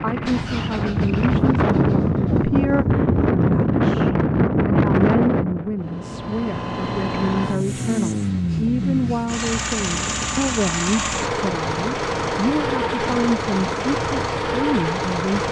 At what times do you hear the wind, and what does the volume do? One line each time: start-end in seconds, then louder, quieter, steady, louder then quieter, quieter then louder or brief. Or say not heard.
0.0-15.4 quieter.